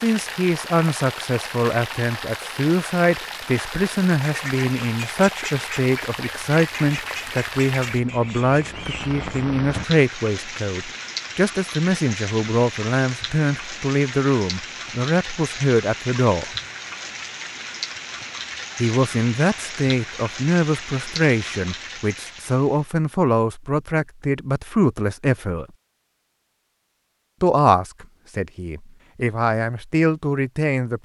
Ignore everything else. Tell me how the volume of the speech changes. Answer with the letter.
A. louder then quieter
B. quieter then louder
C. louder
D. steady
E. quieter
D.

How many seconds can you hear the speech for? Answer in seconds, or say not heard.
27 s.